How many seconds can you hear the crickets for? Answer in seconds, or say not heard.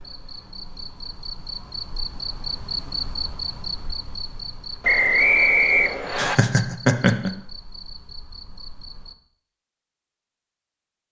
9 s.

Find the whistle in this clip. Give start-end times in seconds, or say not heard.
4.8-6.3.